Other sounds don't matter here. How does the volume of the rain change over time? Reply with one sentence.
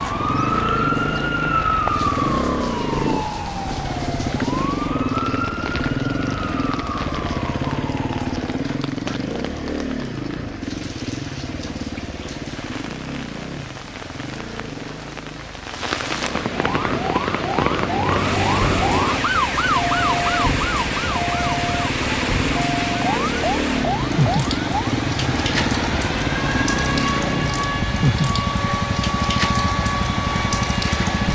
The volume of the rain goes up.